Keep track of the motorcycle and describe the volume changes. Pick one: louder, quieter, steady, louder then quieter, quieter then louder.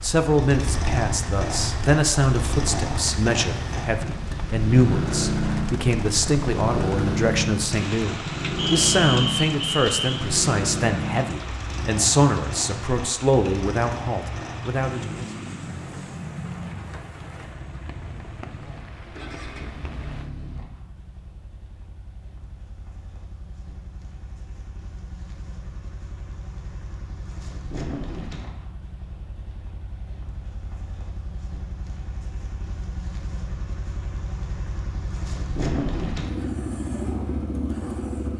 quieter then louder.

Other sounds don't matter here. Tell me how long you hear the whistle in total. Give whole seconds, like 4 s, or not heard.
2 s.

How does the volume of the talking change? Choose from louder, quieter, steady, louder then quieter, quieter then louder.
steady.